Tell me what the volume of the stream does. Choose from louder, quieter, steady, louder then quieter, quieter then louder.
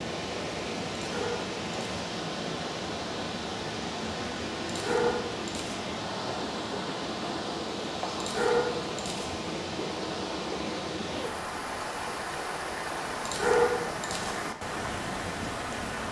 steady.